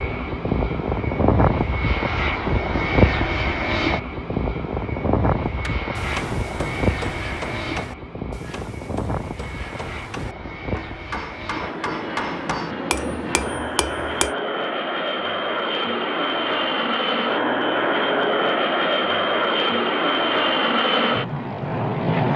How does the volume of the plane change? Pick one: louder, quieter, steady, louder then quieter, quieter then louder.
quieter then louder.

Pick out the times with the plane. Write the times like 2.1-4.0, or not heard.
0.0-22.3.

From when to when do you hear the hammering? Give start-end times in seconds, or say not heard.
5.6-14.3.